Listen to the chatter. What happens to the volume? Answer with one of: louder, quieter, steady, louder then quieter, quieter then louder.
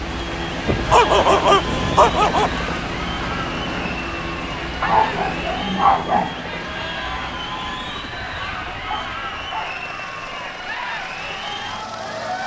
steady.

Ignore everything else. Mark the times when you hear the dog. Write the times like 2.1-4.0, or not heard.
0.7-2.5, 4.8-6.3, 8.8-9.8.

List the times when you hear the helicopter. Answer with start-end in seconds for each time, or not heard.
0.0-12.4.